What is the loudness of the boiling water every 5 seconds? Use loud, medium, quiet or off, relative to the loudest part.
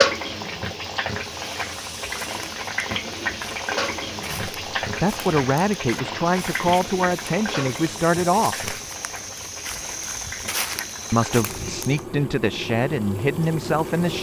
loud, medium, medium.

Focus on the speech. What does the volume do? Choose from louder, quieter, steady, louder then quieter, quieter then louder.
steady.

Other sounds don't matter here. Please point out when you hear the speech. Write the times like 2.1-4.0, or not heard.
4.2-8.7, 11.1-14.1.